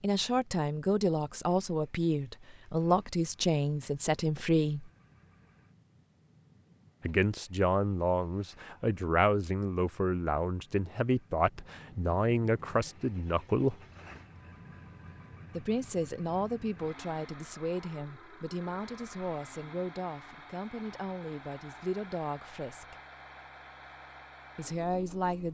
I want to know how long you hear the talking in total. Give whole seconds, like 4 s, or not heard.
20 s.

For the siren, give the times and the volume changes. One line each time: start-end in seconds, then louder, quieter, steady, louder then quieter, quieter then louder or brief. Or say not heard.
not heard.